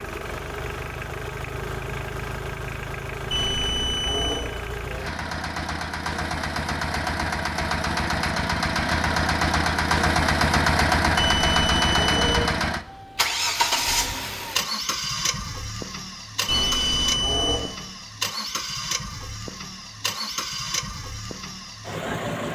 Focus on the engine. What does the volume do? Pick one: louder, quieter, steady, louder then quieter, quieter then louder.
louder then quieter.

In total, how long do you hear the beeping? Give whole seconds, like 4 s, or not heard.
4 s.